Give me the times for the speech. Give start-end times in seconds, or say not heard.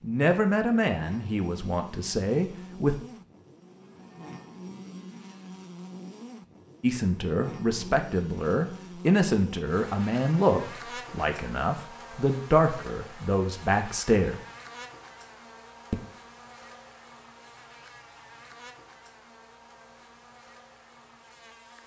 0.0-3.0, 6.8-14.3.